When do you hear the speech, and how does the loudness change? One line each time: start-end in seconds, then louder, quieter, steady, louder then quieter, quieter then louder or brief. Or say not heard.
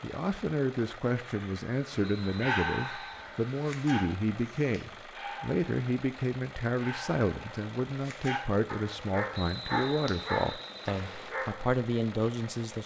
0.0-12.8 steady.